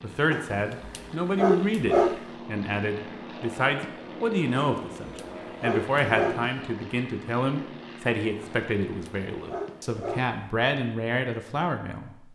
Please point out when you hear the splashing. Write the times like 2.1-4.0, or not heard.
not heard.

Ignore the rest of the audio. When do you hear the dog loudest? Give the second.
2 s.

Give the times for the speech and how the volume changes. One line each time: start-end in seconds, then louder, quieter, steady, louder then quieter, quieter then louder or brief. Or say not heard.
0.0-12.2 steady.